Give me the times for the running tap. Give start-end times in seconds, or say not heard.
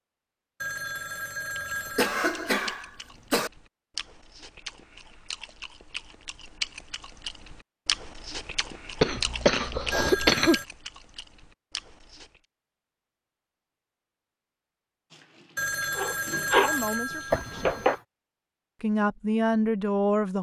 15.1-17.9.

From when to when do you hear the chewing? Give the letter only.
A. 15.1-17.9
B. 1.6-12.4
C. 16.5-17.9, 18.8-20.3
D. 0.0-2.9
B.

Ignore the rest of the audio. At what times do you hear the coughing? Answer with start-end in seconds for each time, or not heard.
1.6-3.5, 9.0-10.6, 17.3-17.9.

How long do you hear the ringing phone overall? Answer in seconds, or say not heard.
5 s.